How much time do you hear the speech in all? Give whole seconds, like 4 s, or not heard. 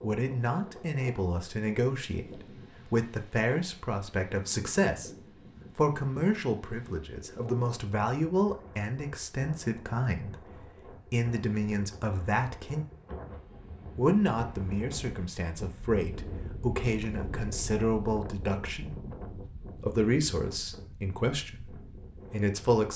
20 s.